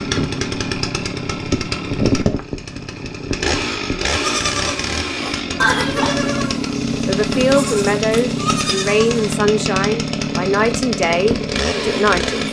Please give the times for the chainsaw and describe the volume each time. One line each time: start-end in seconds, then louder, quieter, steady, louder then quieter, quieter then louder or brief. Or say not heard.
0.0-12.4 steady.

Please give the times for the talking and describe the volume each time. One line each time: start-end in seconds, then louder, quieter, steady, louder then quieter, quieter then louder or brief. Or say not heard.
7.0-12.4 steady.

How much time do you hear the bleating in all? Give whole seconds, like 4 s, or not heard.
5 s.